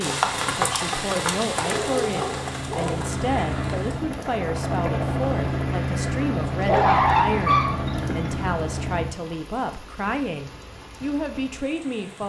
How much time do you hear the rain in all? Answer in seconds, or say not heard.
12 s.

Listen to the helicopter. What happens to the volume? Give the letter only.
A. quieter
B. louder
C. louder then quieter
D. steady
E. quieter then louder
B.